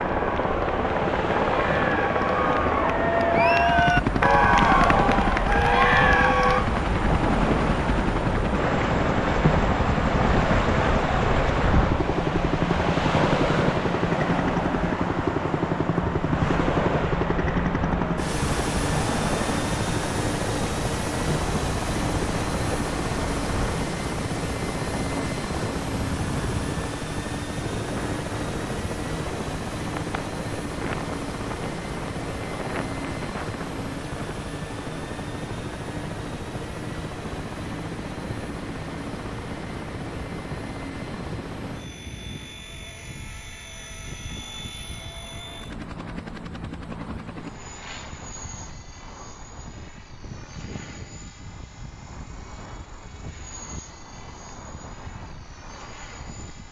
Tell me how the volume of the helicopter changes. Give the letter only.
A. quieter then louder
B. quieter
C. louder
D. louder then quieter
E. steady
B.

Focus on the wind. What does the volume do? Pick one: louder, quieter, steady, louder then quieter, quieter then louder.
quieter.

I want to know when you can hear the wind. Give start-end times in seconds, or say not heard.
0.0-56.6.